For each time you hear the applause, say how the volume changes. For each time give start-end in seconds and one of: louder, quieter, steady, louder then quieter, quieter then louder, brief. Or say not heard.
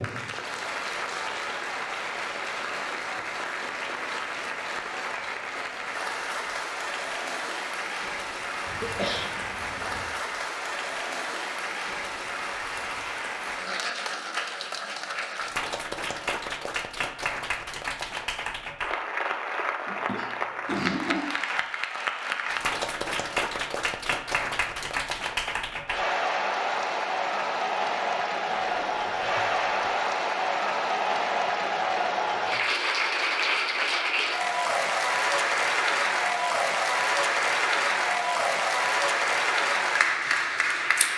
0.0-41.1 louder.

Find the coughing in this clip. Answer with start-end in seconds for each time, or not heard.
8.7-10.1, 19.9-21.3, 28.4-29.8.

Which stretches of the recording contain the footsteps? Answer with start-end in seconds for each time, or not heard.
not heard.